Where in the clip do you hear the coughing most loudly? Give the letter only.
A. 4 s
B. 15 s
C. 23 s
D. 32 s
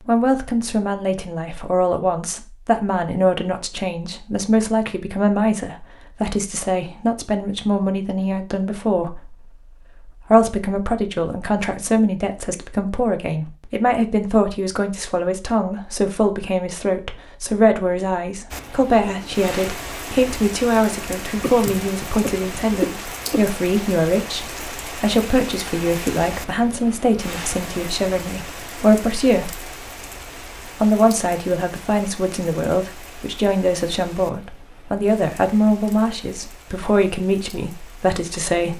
C.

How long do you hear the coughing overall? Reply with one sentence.
The coughing can be heard for 2 seconds in total.